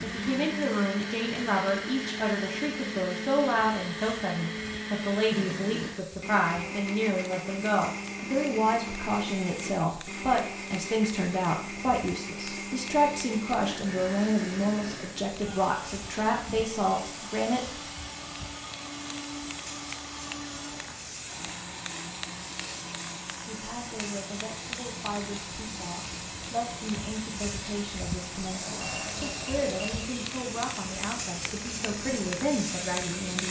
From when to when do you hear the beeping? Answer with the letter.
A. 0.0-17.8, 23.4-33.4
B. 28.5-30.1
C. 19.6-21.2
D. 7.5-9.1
B.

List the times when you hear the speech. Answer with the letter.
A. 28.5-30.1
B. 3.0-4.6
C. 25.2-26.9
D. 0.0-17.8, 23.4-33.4
D.